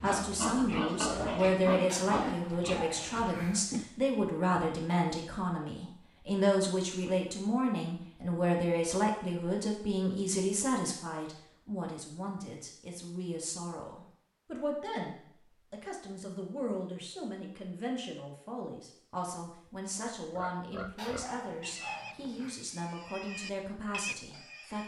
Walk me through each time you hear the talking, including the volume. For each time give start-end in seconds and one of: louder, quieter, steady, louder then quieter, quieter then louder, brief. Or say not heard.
0.0-24.8 quieter.